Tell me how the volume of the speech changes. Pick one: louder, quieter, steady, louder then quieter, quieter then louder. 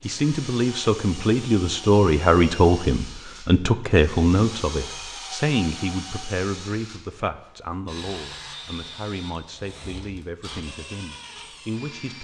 quieter.